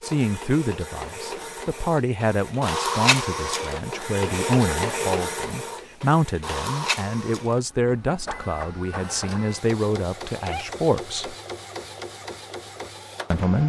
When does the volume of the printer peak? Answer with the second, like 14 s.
3 s.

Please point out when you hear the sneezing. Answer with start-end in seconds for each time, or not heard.
10.2-10.7.